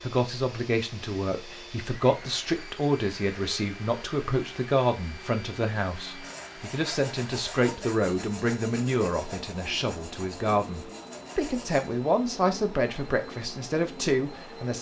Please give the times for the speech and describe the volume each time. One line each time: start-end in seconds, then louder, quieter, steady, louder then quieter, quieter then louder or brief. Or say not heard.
0.0-14.7 steady.